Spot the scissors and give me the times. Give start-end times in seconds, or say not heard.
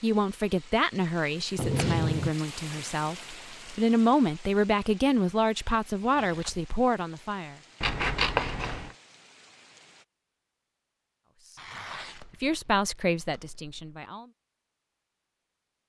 1.6-2.3, 7.8-8.9, 12.2-14.0.